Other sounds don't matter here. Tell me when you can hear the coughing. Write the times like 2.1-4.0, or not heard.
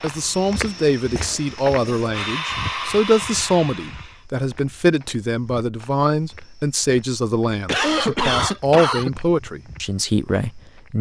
1.1-2.1, 7.7-9.1.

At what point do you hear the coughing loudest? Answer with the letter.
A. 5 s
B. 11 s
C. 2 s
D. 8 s
D.